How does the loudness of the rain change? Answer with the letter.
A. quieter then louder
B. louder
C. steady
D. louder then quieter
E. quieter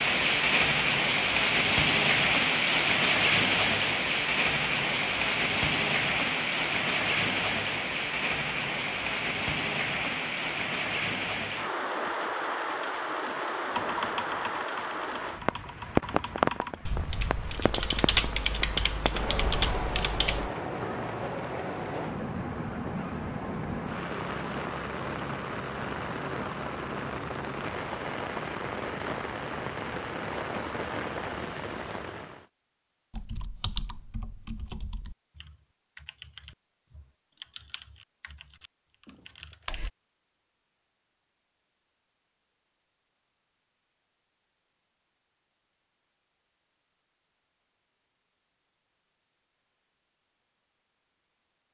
E.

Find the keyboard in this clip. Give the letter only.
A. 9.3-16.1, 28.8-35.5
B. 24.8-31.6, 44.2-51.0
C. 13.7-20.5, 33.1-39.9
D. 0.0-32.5
C.